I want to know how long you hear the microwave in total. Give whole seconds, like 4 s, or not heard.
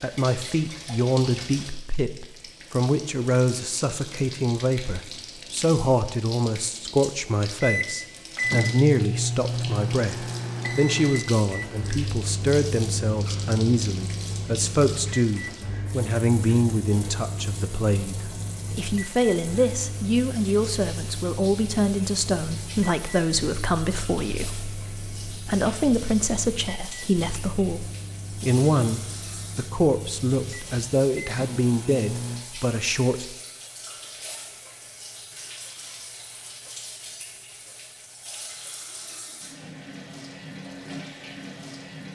25 s.